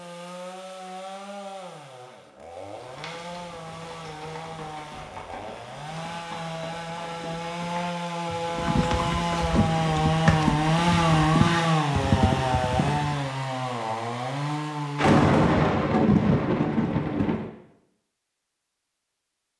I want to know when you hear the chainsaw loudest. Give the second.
11 s.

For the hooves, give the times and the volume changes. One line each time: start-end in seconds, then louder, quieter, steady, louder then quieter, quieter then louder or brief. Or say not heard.
2.6-13.2 louder.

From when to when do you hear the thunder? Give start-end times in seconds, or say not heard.
14.9-17.5.